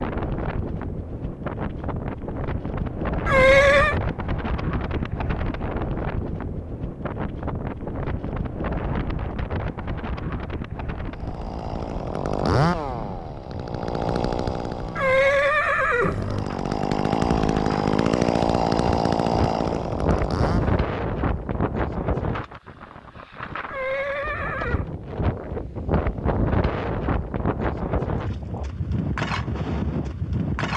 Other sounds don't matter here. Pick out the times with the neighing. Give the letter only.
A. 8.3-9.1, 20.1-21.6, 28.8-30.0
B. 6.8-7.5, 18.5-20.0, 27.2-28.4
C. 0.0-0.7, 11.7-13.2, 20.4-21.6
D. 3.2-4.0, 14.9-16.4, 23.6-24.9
D.